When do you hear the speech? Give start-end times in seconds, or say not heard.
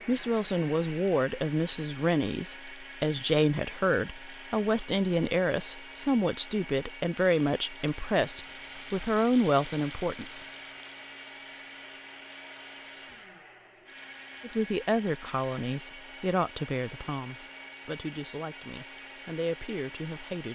0.1-10.4, 14.4-20.5.